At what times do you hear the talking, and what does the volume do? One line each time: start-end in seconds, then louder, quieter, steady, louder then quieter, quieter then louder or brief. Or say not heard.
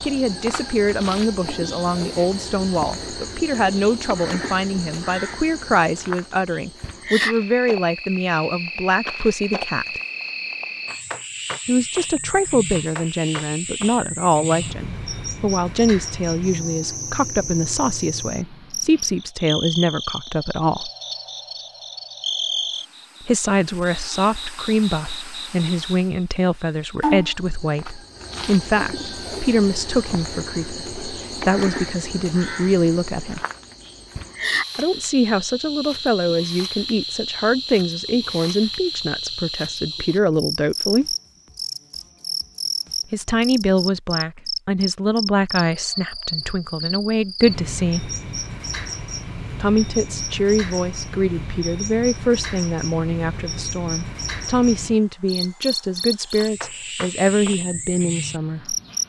0.0-10.0 steady
11.7-20.9 steady
23.2-33.4 steady
34.8-41.0 steady
43.1-48.1 quieter then louder
49.6-58.8 steady.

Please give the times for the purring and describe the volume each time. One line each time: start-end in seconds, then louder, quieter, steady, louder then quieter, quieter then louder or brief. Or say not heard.
not heard.